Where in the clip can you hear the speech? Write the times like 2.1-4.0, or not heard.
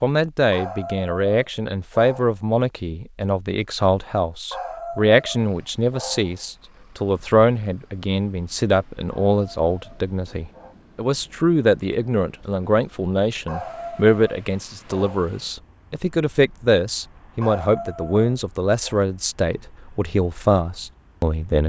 0.0-21.6.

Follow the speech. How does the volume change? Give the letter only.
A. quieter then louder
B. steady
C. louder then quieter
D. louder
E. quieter
B.